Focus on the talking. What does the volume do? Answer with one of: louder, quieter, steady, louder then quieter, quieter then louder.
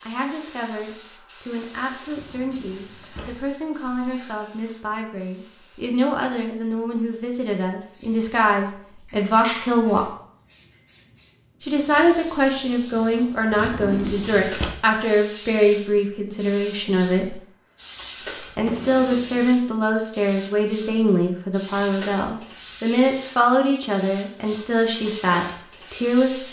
louder.